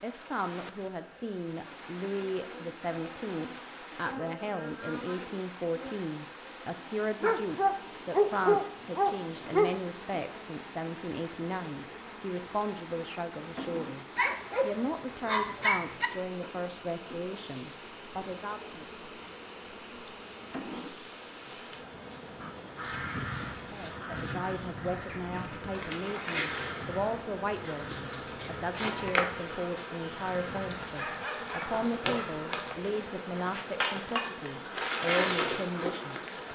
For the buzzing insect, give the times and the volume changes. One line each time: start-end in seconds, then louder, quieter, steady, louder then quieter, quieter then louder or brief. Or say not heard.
0.0-36.5 louder.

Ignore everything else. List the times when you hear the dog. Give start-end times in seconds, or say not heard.
7.2-9.9, 14.2-16.1, 30.9-32.7.